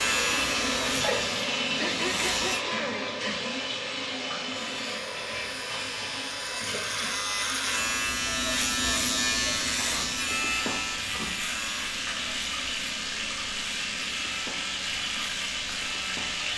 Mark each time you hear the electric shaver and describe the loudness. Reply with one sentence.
The electric shaver can be heard briefly from 0.0 to 2.6 s; and from 4.7 to 16.5 s, getting louder then quieter.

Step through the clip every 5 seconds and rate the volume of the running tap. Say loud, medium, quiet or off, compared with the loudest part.
loud, medium, loud, loud.